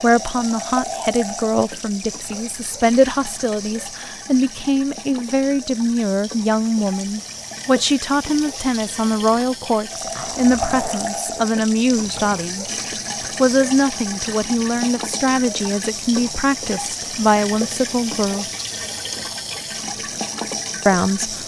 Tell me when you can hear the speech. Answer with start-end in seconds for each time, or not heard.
0.0-18.4, 20.9-21.4.